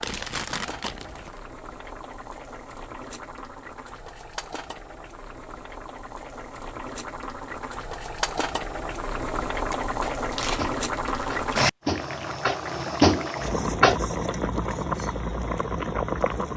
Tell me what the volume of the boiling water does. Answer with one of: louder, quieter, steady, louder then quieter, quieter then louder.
louder.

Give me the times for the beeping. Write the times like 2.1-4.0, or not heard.
not heard.